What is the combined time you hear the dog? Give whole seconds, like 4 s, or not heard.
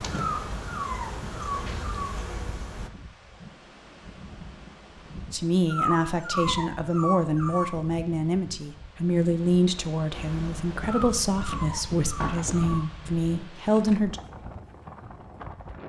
6 s.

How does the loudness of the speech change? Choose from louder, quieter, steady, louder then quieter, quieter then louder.
steady.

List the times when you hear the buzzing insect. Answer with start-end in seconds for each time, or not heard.
0.0-2.9, 10.1-12.8.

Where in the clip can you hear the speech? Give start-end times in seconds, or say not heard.
5.3-14.2.